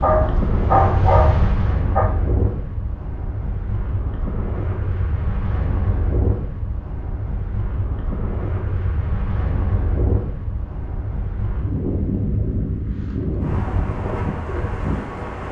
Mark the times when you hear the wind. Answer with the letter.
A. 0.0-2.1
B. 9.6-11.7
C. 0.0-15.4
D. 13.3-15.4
C.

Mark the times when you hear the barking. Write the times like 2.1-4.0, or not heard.
0.0-2.1.